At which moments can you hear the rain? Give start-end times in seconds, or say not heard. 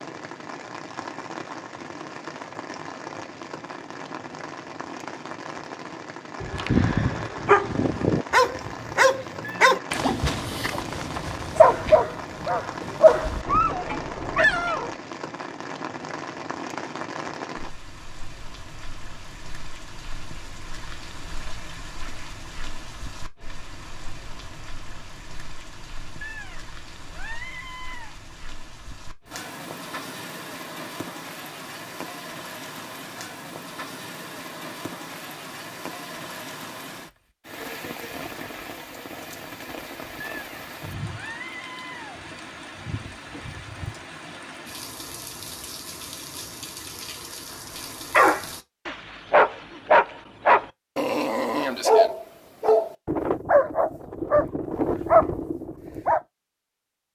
0.0-48.6.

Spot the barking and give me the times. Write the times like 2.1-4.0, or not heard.
6.4-14.9, 48.1-56.2.